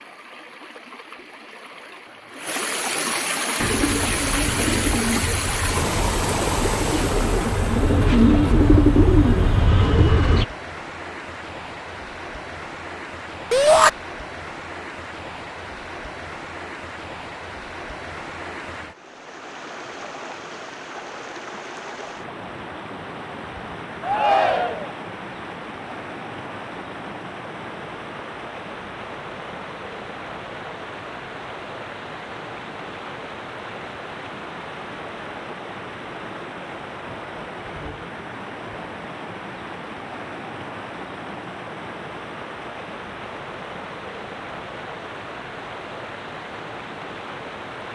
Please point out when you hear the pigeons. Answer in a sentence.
You can hear the pigeons from 3.5 to 10.4 s.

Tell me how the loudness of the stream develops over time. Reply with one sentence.
The volume of the stream goes down.